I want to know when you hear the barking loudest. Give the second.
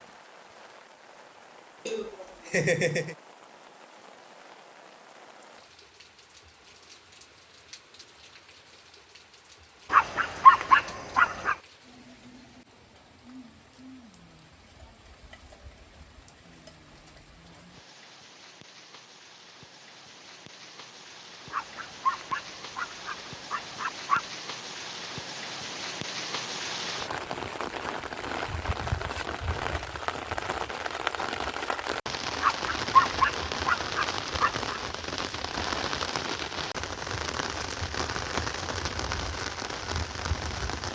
11 s.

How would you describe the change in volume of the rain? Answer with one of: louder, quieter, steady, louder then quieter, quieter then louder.
louder.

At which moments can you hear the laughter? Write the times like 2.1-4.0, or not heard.
1.9-3.1.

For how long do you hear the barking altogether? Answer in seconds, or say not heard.
7 s.